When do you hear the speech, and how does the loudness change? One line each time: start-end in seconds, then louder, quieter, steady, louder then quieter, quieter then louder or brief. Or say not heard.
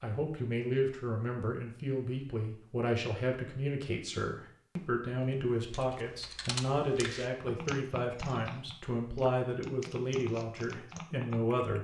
0.0-11.8 steady.